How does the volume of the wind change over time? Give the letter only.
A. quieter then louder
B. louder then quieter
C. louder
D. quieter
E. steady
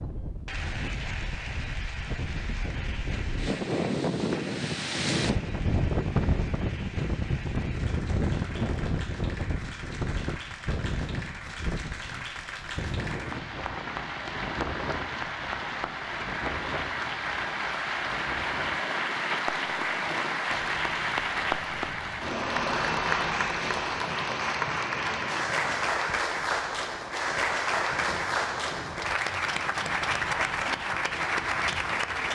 D.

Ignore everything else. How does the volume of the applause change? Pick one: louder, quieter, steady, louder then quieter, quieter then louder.
louder.